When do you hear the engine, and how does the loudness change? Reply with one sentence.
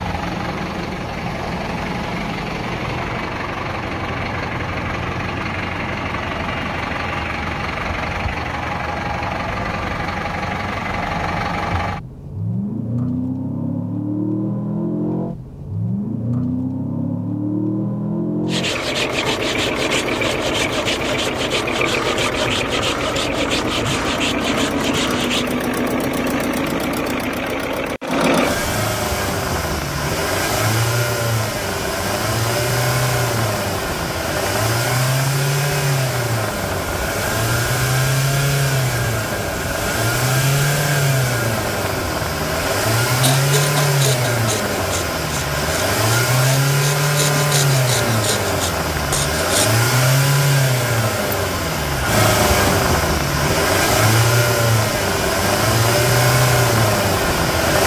You can hear the engine from 0.0 to 57.8 s, getting louder.